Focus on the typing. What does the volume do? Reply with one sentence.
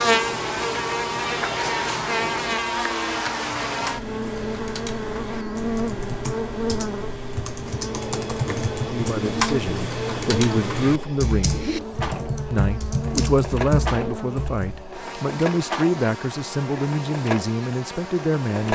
The volume of the typing goes up.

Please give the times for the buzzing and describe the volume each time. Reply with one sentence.
The buzzing can be heard from 0.0 to 18.7 s, getting quieter.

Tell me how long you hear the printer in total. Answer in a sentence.
The printer can be heard for 19 seconds in total.